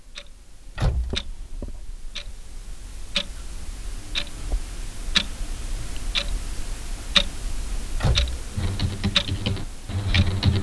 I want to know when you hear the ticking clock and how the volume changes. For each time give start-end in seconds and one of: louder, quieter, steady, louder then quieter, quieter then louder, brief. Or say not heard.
0.0-10.5 louder.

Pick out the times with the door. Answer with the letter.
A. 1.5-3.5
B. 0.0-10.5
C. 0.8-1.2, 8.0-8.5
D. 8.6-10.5
C.